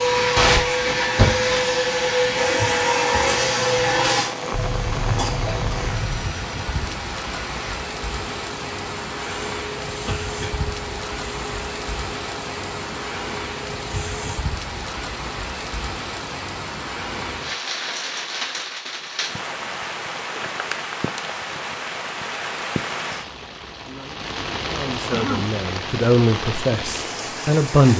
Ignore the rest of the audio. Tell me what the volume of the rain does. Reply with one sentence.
The volume of the rain stays about the same.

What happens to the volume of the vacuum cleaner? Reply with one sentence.
The loudness of the vacuum cleaner goes down.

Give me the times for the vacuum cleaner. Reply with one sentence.
You can hear the vacuum cleaner from 0.0 to 14.4 s.